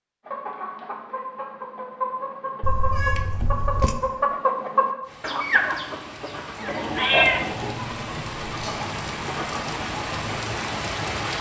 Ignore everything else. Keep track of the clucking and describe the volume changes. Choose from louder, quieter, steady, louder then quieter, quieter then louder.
louder then quieter.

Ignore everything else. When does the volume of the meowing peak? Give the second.
7 s.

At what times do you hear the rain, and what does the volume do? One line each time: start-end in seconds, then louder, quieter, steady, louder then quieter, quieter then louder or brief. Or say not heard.
5.0-11.3 louder.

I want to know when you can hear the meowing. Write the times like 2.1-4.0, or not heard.
2.6-4.0, 6.7-7.8.